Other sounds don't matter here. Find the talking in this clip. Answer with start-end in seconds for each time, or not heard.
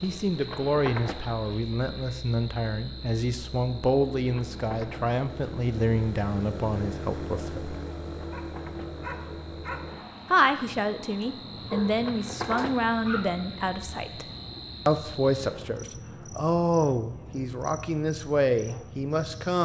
0.0-7.8, 10.3-14.2, 14.8-19.6.